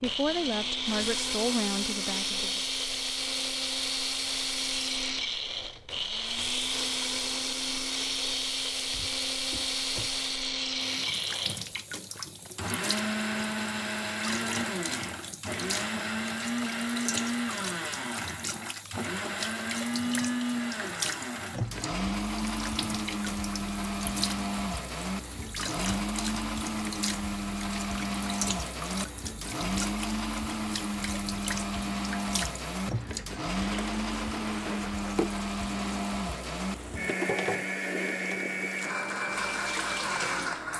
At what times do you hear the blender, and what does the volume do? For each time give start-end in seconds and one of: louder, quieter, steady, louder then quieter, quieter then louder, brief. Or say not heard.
0.0-40.7 steady.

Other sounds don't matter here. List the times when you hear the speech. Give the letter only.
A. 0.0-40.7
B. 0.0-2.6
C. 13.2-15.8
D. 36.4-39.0
B.